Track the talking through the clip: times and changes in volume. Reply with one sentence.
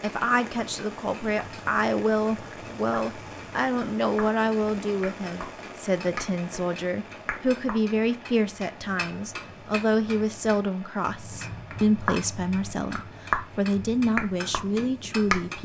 You can hear the talking from 0.0 to 15.6 s, at a steady volume.